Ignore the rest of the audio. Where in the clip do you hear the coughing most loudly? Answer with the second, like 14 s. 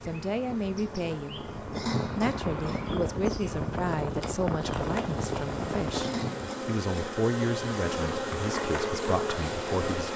2 s.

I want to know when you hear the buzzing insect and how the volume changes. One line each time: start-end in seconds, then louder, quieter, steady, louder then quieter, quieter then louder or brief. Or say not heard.
0.0-10.1 louder.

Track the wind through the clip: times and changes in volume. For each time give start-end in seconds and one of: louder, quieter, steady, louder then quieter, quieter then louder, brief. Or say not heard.
0.0-6.5 louder.